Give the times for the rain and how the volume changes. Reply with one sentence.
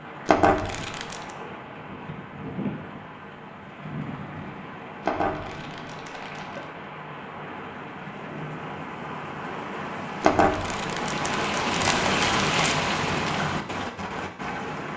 The rain can be heard from 0.0 to 14.9 s, getting louder.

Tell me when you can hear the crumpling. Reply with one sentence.
The crumpling can be heard from 0.2 to 1.3 s, from 5.0 to 6.7 s and from 10.2 to 12.8 s.